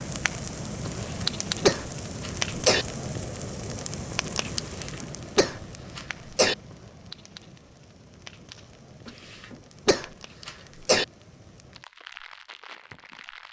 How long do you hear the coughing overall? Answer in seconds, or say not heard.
6 s.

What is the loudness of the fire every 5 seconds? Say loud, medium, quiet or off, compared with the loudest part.
loud, quiet, quiet.